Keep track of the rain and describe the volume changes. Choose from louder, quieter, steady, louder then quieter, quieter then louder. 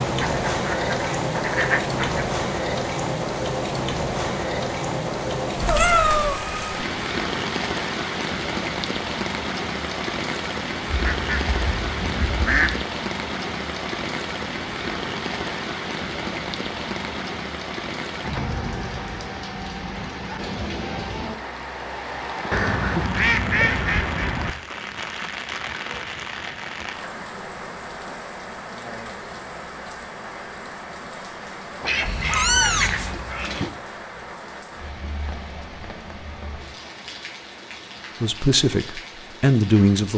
quieter.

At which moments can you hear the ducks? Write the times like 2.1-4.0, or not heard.
0.2-2.2, 10.9-12.8, 22.5-24.5, 31.8-33.7.